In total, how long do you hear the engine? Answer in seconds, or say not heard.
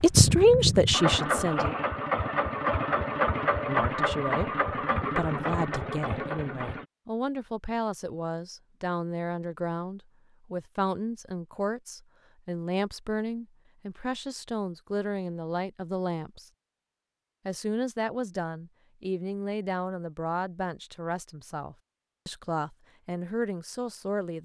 7 s.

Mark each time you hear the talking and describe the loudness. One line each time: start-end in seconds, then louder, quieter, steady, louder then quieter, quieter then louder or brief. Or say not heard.
0.0-1.8 brief
3.6-16.5 steady
17.4-24.3 steady.